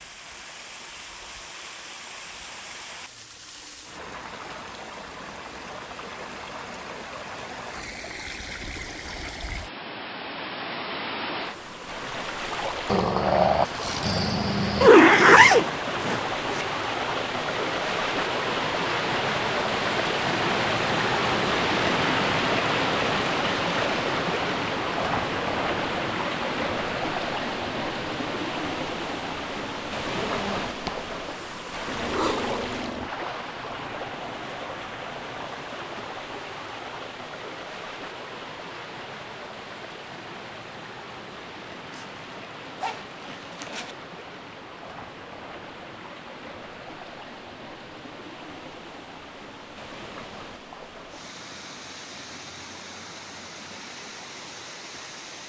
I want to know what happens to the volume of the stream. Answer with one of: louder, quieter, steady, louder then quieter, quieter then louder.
louder then quieter.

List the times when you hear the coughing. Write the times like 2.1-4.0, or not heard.
not heard.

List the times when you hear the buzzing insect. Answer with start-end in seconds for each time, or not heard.
not heard.